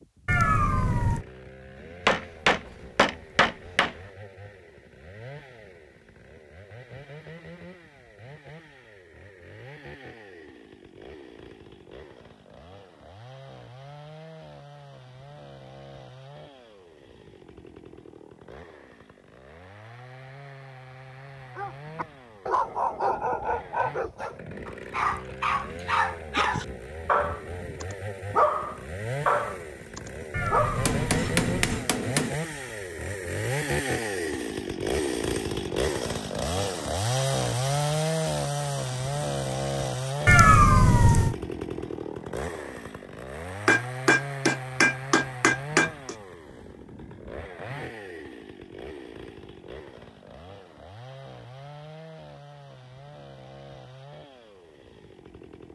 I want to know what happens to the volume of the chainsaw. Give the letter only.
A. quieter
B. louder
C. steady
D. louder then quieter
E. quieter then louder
D.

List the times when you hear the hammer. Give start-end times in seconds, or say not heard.
2.0-4.0, 30.9-32.4, 43.6-46.1.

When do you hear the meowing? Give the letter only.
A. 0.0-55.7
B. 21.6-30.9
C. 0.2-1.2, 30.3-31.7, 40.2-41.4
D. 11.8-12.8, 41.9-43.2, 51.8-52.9
C.